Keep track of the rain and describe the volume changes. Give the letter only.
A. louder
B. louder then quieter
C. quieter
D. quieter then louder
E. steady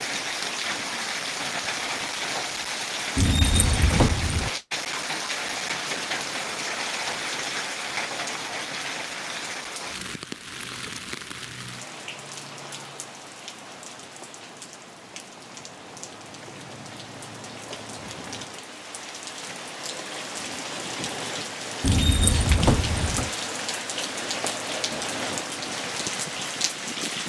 D.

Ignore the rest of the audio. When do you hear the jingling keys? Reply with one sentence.
The jingling keys can be heard from 3.1 to 4.5 s and from 21.8 to 23.3 s.